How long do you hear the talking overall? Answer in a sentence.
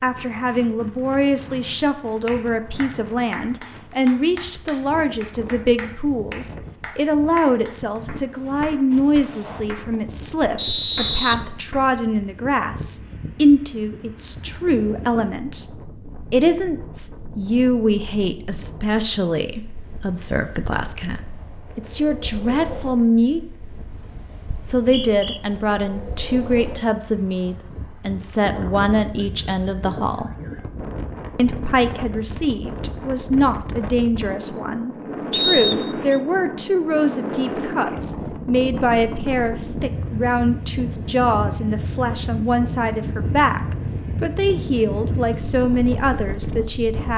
You can hear the talking for 44 seconds altogether.